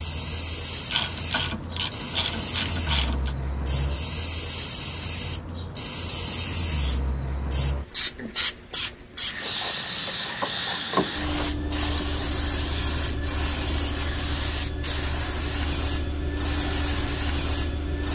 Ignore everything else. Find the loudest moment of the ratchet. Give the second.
1 s.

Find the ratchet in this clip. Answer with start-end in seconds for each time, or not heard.
0.9-3.4, 10.2-11.8.